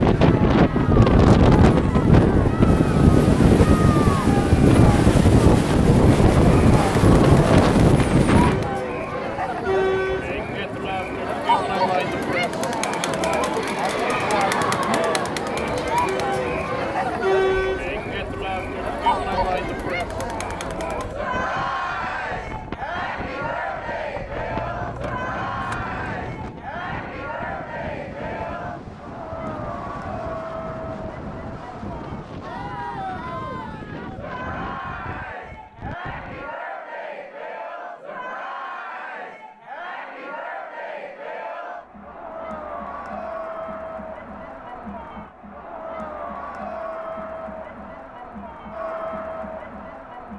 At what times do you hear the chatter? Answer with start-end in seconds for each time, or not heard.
0.1-50.3.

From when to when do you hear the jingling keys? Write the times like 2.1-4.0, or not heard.
24.5-26.5.